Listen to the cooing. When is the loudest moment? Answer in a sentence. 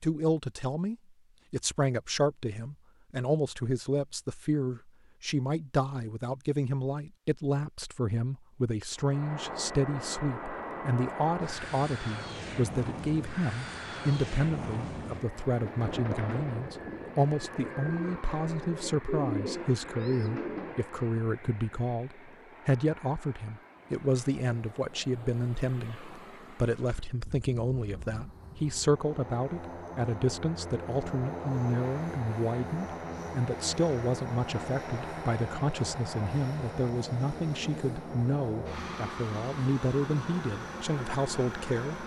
The loudest moment of the cooing is at 19 seconds.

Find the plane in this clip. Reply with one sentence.
The plane can be heard from 8.9 to 42.0 s.